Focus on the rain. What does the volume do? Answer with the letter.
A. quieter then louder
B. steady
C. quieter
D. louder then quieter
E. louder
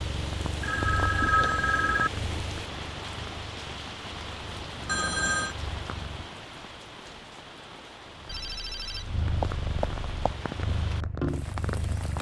A.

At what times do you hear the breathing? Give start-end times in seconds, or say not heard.
not heard.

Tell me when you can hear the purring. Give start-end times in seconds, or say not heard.
0.0-6.3, 8.1-12.1.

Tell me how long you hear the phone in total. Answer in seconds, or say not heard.
4 s.